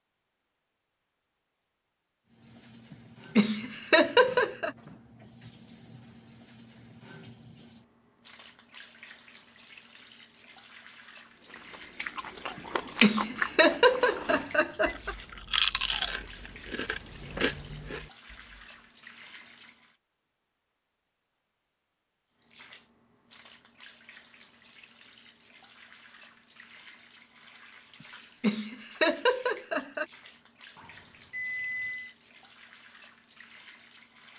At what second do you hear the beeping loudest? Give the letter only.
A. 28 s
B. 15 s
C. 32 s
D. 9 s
C.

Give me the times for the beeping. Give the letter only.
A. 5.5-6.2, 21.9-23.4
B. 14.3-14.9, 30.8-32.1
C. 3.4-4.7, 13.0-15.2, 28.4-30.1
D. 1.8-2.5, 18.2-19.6
B.